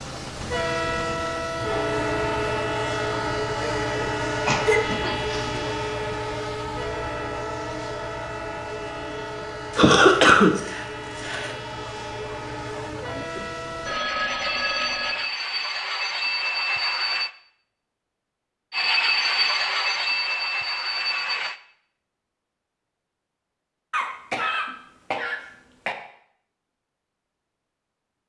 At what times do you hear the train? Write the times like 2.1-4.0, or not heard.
0.0-17.3, 18.7-21.6.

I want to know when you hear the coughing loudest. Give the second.
10 s.